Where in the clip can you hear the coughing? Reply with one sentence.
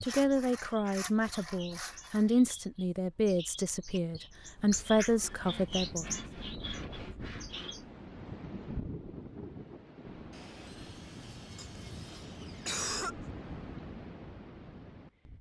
You can hear the coughing from 11.6 to 13.2 s.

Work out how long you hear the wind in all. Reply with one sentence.
The wind can be heard for 10 seconds in total.